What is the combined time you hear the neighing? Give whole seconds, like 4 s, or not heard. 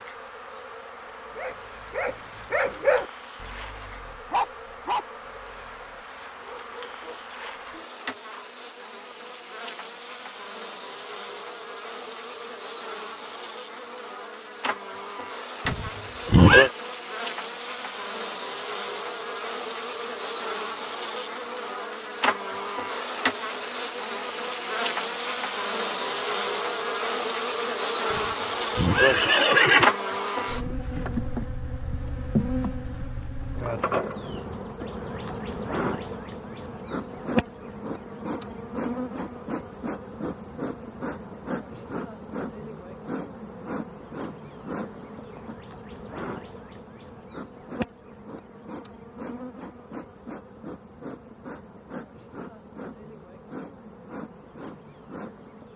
3 s.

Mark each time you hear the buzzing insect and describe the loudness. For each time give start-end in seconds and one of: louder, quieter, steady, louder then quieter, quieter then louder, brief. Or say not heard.
0.0-55.7 louder then quieter.